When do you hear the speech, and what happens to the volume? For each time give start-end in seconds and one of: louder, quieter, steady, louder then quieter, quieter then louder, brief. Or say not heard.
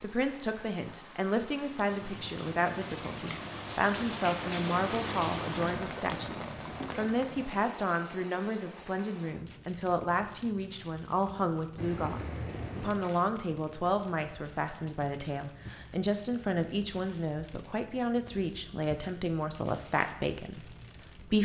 0.0-21.3 steady.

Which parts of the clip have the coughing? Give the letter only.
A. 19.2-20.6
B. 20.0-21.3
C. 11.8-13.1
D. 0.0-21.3
C.